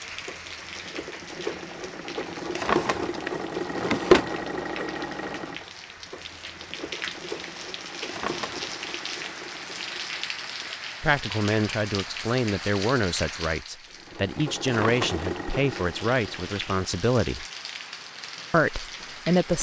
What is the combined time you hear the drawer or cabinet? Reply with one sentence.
The drawer or cabinet can be heard for 3 seconds in total.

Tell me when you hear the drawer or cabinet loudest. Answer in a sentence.
The loudest moment of the drawer or cabinet is at 4 seconds.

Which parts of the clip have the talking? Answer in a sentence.
You can hear the talking from 11.0 to 17.4 s and from 18.5 to 19.5 s.